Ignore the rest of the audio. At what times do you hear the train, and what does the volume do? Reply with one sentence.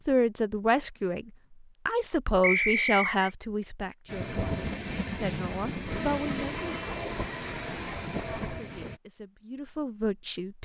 You can hear the train from 4.0 to 9.0 s, at a steady volume.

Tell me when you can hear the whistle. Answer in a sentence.
The whistle can be heard from 2.4 to 3.3 s.